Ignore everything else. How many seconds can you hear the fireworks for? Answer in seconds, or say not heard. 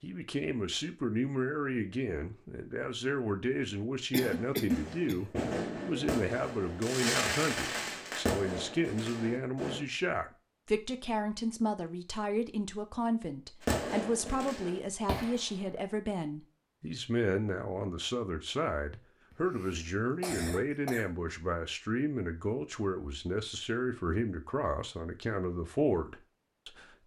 8 s.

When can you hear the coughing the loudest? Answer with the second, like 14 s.
5 s.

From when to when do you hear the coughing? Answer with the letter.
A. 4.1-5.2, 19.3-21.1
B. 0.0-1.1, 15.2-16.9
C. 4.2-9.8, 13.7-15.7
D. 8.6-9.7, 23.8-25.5
A.